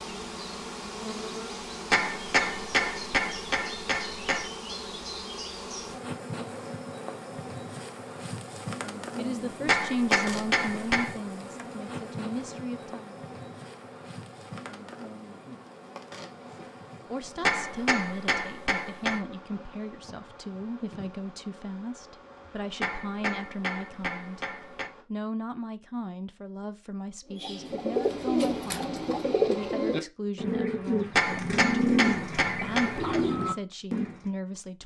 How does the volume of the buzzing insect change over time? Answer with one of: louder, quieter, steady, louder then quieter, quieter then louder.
quieter.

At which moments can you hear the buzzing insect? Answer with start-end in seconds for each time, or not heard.
0.0-25.1.